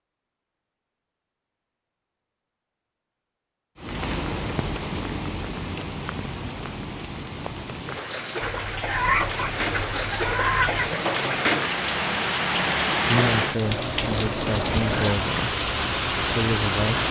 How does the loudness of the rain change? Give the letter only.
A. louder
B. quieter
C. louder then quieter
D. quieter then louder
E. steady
A.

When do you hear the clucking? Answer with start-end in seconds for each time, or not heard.
8.4-10.9.